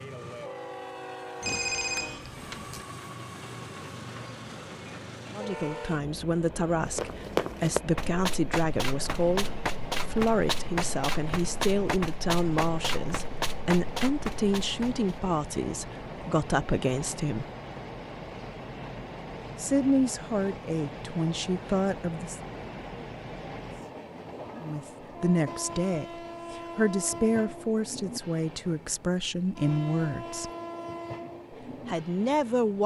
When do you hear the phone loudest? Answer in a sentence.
The volume of the phone peaks at 2 seconds.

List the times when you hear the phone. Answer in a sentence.
You can hear the phone from 1.4 to 2.9 s.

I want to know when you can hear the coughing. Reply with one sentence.
The coughing can't be heard in this clip.